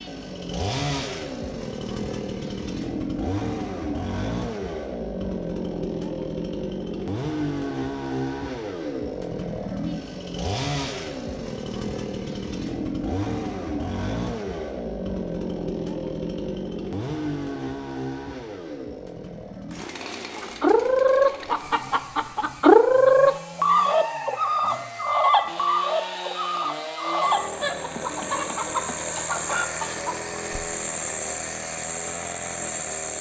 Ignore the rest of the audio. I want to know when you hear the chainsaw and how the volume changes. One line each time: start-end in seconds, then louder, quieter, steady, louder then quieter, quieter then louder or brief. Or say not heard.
0.0-33.1 quieter then louder.